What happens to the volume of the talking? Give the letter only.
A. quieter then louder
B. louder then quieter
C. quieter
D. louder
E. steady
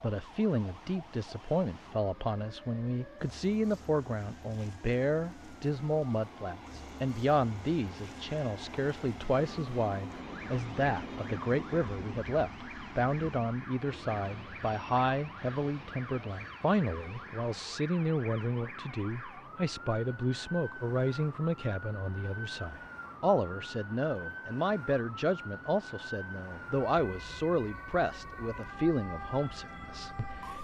E.